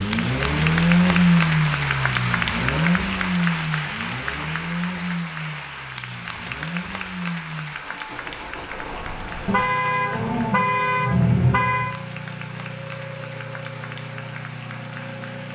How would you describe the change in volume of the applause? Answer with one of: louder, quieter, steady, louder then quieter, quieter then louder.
quieter.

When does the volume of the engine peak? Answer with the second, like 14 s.
1 s.